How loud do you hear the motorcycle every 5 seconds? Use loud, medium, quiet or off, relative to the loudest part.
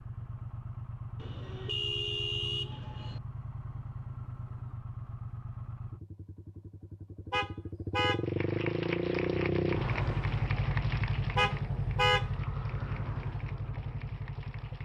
medium, loud, loud.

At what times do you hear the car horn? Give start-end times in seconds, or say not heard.
1.1-3.2, 7.3-8.2, 11.3-12.3.